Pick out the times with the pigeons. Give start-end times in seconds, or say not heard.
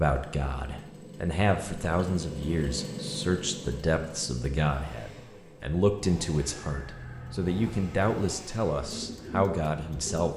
8.8-10.3.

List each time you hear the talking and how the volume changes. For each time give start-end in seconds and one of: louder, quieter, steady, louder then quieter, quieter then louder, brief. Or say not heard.
0.0-10.3 steady.